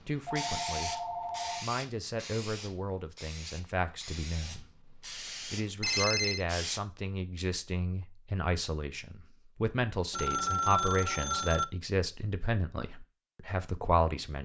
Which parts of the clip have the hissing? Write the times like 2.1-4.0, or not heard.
0.3-6.8.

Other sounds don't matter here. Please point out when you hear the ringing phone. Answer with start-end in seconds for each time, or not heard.
0.2-1.6, 5.8-6.5, 10.1-11.7.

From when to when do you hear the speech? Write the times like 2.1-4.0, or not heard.
0.0-14.4.